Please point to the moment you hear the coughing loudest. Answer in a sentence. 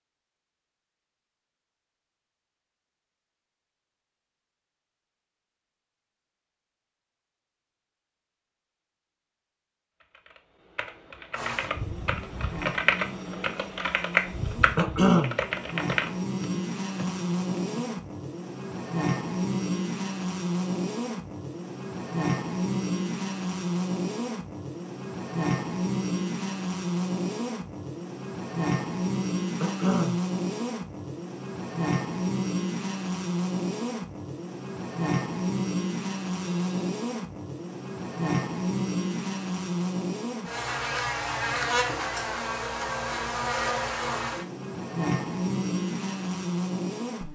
The loudest moment of the coughing is at 15 seconds.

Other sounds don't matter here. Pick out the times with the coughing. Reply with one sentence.
The coughing can be heard from 14.8 to 15.4 s and from 29.6 to 30.2 s.